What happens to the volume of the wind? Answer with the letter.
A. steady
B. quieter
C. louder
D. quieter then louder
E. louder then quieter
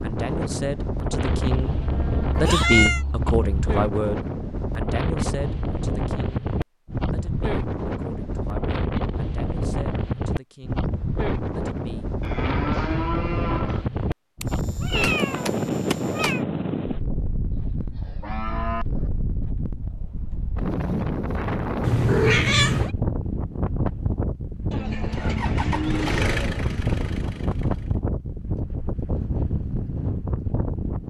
A.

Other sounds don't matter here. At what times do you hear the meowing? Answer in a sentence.
The meowing can be heard from 2.4 to 3.0 s, from 14.4 to 16.4 s and from 21.8 to 22.9 s.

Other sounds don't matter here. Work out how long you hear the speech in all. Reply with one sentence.
The speech can be heard for 10 seconds in total.